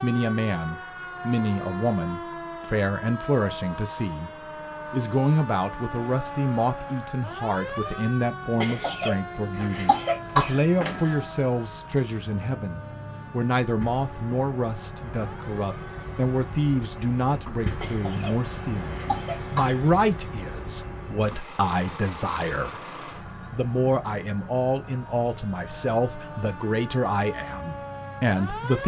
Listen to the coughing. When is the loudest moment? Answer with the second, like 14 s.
10 s.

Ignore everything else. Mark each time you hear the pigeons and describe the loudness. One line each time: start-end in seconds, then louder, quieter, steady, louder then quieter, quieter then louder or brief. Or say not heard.
not heard.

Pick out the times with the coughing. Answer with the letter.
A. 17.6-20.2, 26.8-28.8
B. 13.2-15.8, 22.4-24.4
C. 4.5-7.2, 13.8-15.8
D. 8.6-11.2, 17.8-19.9
D.